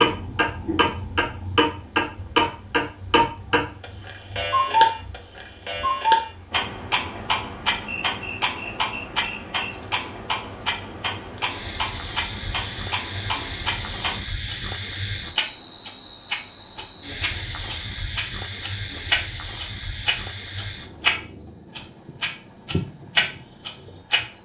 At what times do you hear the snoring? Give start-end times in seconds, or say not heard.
not heard.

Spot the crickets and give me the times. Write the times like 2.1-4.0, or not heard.
0.0-24.4.